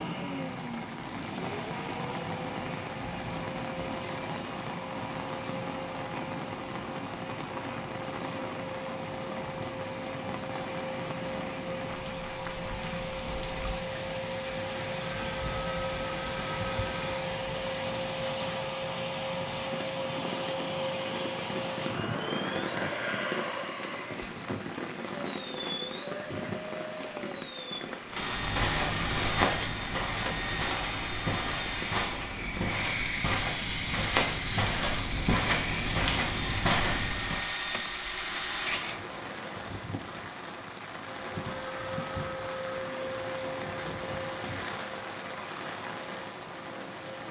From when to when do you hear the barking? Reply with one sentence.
You can't hear the barking here.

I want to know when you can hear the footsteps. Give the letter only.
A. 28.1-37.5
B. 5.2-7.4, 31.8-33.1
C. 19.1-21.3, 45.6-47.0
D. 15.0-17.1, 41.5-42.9
A.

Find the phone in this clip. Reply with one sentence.
The phone can be heard from 15.0 to 17.1 s and from 41.5 to 42.9 s.